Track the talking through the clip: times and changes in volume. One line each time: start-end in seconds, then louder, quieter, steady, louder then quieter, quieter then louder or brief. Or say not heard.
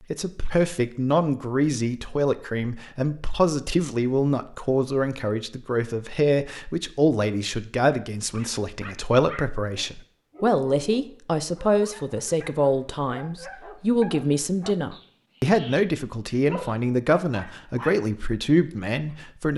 0.1-19.5 steady.